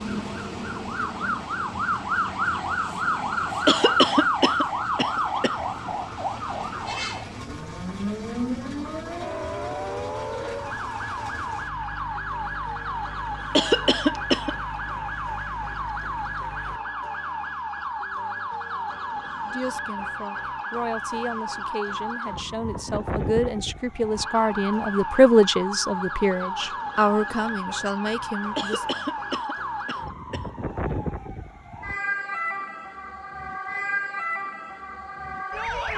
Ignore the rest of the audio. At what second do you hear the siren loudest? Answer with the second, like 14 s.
4 s.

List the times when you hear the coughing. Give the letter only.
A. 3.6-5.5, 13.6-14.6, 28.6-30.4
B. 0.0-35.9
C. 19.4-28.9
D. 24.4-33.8
A.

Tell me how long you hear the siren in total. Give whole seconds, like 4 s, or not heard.
36 s.